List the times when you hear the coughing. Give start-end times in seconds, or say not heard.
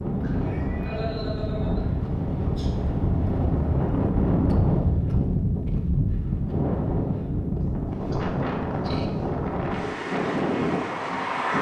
0.2-2.7, 8.1-9.1.